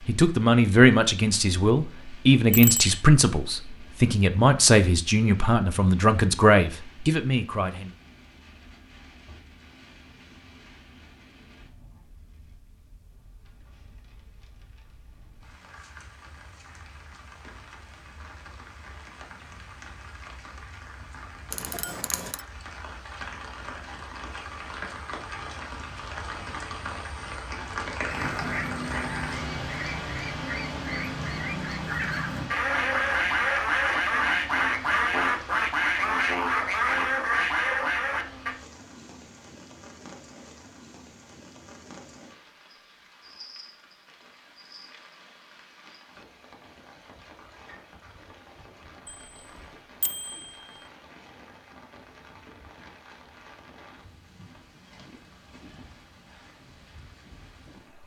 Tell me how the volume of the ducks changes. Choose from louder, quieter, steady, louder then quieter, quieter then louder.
louder.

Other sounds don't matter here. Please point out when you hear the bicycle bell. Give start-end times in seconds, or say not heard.
2.5-3.0, 21.5-22.4, 49.0-50.8.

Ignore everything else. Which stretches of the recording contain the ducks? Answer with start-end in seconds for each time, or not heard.
28.1-38.5.